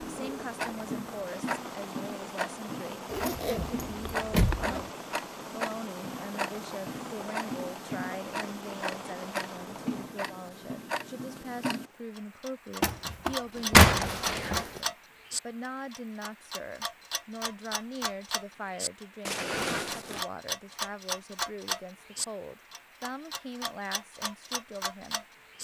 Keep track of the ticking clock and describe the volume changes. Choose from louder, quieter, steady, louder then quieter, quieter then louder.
steady.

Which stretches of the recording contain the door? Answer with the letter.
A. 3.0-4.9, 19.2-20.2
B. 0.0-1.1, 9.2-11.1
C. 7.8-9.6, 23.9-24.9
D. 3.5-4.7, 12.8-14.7
D.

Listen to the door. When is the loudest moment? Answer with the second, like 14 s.
14 s.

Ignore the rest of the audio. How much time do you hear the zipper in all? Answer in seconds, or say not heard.
3 s.